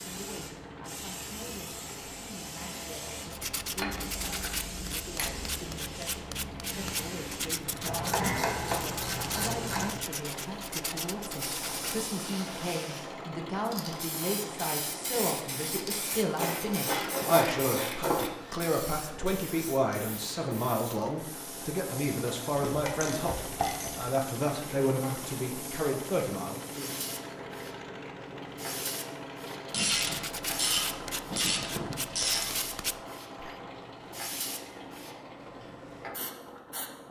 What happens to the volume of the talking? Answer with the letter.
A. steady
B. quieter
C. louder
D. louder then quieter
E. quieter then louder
C.